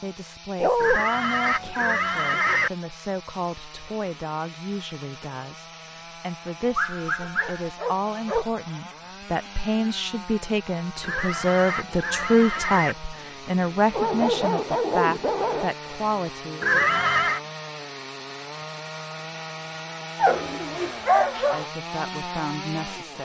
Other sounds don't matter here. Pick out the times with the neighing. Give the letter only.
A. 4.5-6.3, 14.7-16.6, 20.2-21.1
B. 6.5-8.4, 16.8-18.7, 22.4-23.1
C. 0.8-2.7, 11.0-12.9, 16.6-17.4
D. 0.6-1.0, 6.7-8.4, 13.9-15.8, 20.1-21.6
C.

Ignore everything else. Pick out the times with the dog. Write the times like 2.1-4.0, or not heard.
0.6-1.0, 6.7-8.4, 13.9-15.8, 20.1-21.6.